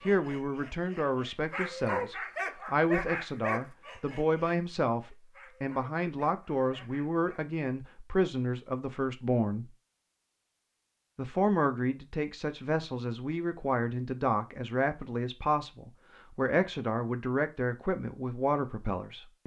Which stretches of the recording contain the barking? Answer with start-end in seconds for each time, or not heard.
0.0-7.5.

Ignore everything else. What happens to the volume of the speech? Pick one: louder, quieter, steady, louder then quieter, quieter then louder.
steady.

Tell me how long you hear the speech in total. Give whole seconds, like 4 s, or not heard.
18 s.